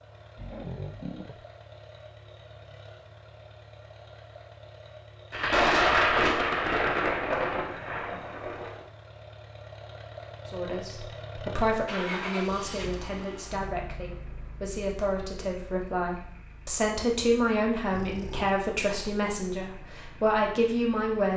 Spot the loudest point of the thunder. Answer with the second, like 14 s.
6 s.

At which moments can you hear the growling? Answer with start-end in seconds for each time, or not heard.
0.3-1.4, 7.6-8.4, 17.9-18.6.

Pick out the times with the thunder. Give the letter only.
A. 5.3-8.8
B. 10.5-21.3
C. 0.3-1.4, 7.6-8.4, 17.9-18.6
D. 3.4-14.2
A.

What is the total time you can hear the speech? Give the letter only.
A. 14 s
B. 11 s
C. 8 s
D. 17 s
B.